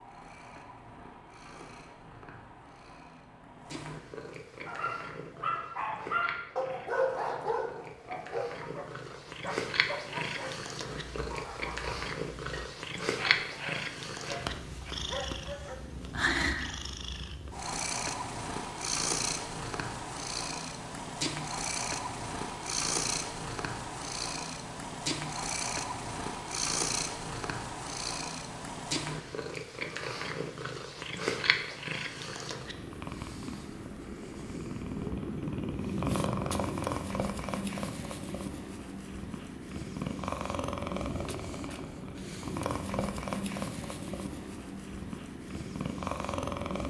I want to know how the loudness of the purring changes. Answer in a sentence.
The volume of the purring goes up.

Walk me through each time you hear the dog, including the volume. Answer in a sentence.
The dog can be heard from 4.7 to 15.8 s, getting quieter.